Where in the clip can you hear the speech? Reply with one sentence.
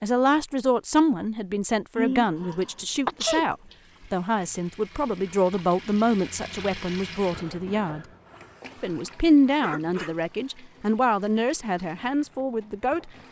You can hear the speech from 0.0 to 8.1 s and from 8.8 to 13.1 s.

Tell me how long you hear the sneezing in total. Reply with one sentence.
The sneezing can be heard for 3 seconds in total.